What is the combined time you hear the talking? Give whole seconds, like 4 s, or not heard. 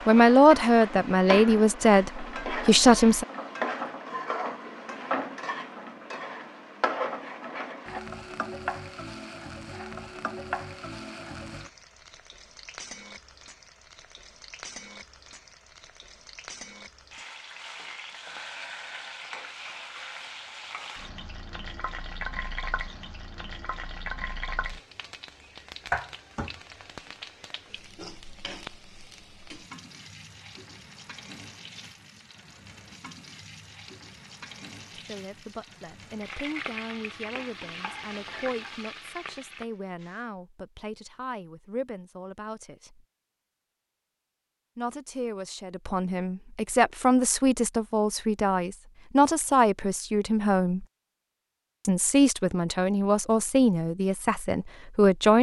21 s.